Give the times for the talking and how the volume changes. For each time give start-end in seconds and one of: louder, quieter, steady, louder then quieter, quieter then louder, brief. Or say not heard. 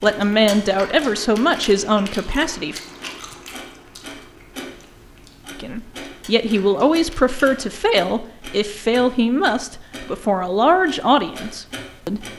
0.0-2.8 brief
5.6-12.2 steady.